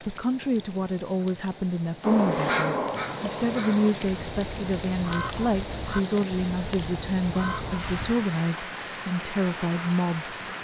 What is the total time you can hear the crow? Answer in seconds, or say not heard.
6 s.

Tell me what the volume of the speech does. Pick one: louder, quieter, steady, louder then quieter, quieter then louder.
steady.